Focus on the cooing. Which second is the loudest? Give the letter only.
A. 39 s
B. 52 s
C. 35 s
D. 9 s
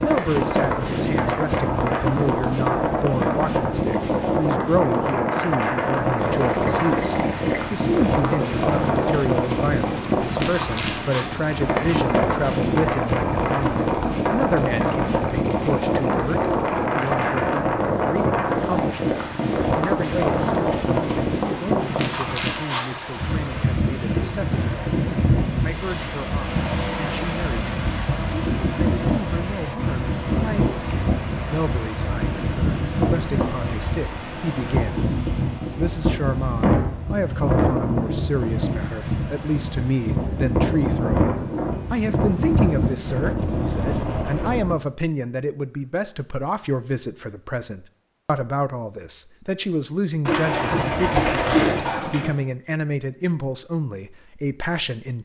B.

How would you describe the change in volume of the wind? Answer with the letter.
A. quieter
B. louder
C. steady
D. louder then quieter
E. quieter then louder
C.